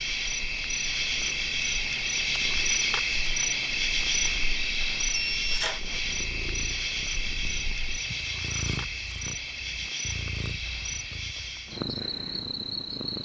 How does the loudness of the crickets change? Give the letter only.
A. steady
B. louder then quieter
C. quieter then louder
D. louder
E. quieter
E.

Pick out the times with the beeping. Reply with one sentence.
The beeping can be heard from 5.1 to 5.8 s.